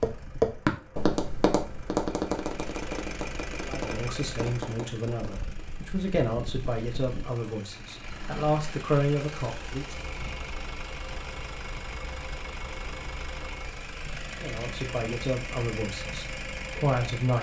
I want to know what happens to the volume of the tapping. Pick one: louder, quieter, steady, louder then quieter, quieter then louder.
quieter.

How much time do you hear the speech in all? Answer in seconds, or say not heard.
9 s.